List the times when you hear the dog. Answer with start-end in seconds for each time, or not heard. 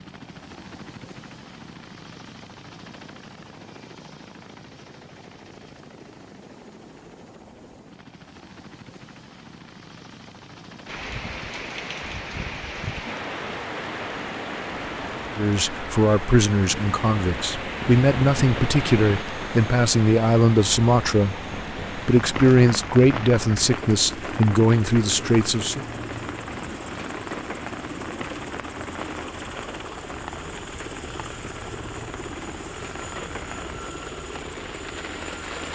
not heard.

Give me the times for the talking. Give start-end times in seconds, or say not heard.
15.3-25.8.